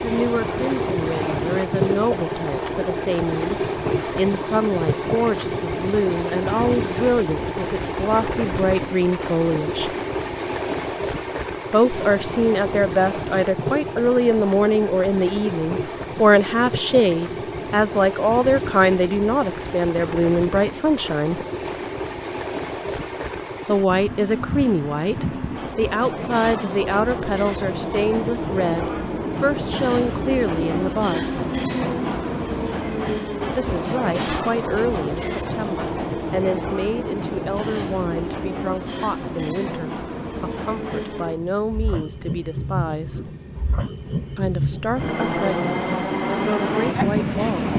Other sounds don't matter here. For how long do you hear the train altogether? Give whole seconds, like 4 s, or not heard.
48 s.